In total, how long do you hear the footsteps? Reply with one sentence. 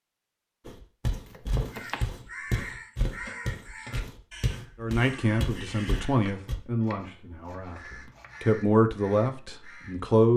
You can hear the footsteps for 6 seconds altogether.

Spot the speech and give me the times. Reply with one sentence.
The speech can be heard from 4.8 to 10.3 s.